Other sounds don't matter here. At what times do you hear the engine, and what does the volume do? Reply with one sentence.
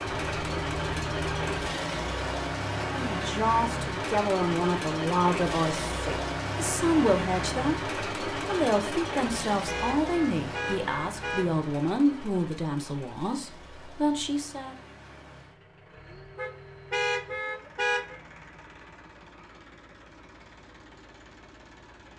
The engine can be heard from 0.0 to 22.1 s, getting quieter.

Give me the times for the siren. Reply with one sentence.
You can't hear the siren here.